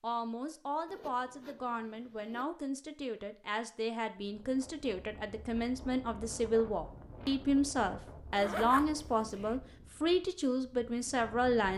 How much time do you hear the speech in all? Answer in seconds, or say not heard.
12 s.